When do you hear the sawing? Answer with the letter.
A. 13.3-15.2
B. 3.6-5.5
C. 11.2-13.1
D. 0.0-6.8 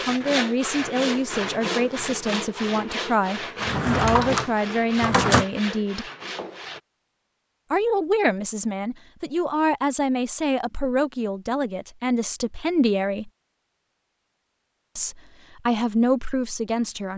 D.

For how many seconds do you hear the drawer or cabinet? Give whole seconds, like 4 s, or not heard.
2 s.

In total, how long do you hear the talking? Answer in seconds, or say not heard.
14 s.